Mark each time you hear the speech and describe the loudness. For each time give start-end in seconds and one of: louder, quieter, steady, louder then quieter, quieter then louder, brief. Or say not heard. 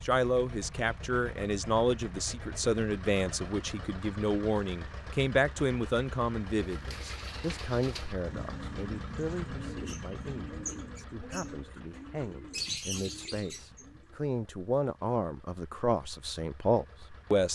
0.0-17.4 quieter then louder.